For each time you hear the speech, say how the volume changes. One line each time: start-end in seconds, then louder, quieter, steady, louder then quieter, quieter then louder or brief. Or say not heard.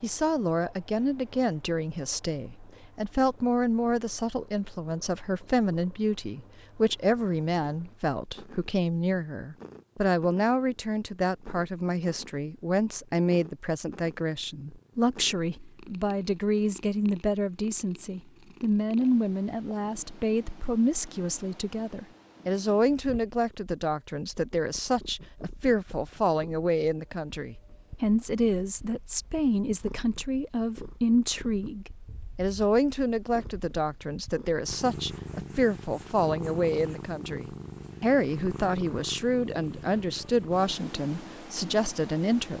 0.0-42.5 steady.